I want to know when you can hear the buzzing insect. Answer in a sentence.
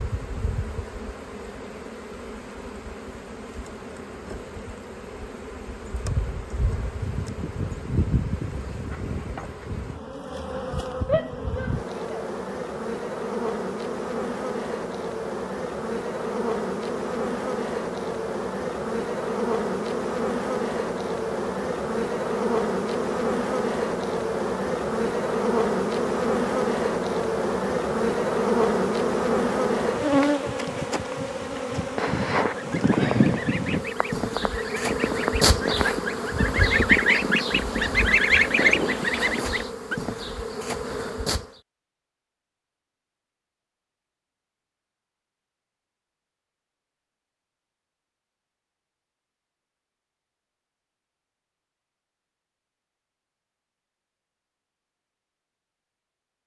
The buzzing insect can be heard from 0.0 to 41.6 s.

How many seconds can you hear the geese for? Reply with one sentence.
You can hear the geese for 8 seconds altogether.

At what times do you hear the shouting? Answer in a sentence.
The shouting can be heard from 11.1 to 12.2 s.